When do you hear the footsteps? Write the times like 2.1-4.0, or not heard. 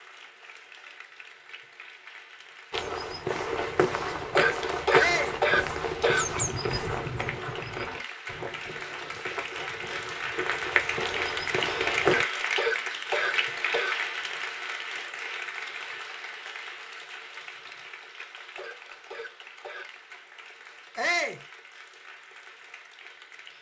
2.7-12.2.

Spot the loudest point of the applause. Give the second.
12 s.